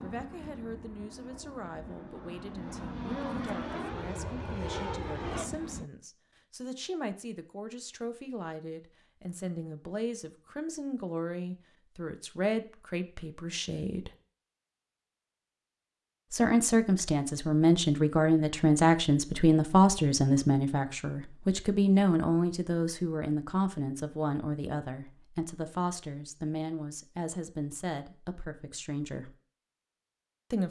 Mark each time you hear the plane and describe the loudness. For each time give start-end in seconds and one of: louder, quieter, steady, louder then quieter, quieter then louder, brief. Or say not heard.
0.0-5.8 louder.